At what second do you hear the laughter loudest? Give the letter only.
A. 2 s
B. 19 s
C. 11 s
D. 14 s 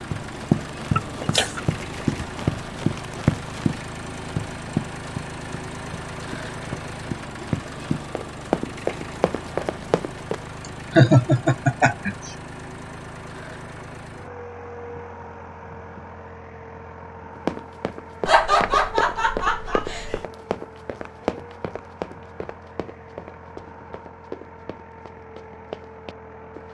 C.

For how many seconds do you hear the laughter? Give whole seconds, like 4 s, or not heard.
4 s.